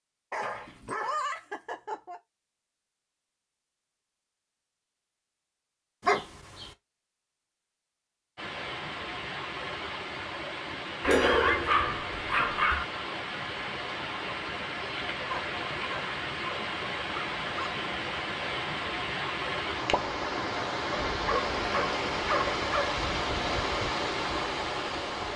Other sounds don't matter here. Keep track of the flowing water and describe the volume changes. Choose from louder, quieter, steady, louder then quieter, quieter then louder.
louder.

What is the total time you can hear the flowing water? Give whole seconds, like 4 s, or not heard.
17 s.